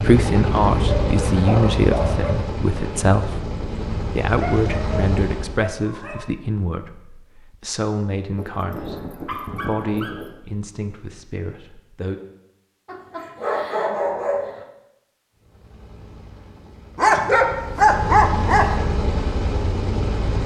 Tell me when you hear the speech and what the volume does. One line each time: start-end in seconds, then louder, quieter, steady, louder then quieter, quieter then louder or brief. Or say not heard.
0.0-12.2 quieter.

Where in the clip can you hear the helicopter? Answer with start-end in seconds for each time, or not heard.
0.0-5.7, 15.3-20.4.